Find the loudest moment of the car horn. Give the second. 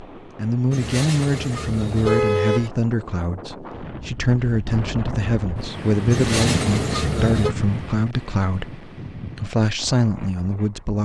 2 s.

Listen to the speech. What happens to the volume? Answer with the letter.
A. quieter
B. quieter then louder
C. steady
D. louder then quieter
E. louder
C.